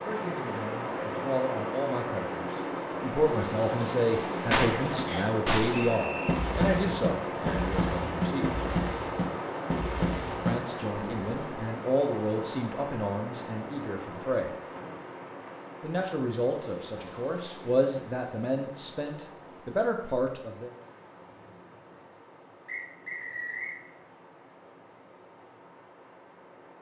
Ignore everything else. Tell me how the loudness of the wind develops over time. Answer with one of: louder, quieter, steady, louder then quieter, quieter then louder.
quieter.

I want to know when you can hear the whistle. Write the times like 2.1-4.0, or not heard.
5.0-6.3, 14.8-15.6, 22.6-23.8.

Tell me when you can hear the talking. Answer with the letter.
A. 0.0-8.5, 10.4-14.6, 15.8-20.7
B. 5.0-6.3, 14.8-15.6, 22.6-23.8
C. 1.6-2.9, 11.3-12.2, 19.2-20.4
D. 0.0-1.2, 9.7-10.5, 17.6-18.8
A.